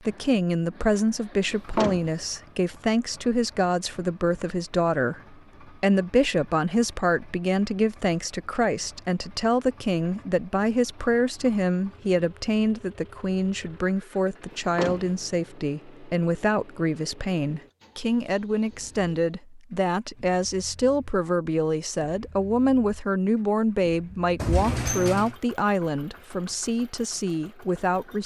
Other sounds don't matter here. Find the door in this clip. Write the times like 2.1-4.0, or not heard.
1.5-2.2, 14.5-15.2, 24.4-25.4.